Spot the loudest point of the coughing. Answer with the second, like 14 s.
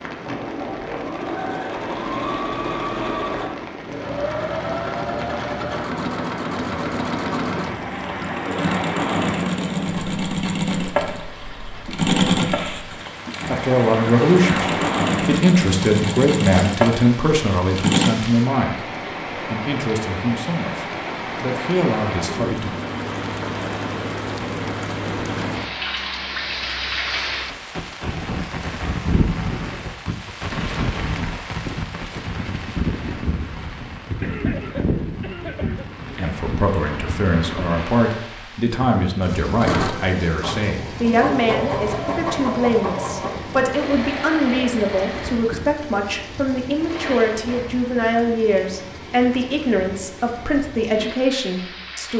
35 s.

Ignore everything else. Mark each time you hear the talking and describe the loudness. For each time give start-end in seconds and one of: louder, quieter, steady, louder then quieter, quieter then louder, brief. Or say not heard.
13.4-22.7 quieter
36.1-52.1 steady.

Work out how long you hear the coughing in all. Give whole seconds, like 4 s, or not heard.
2 s.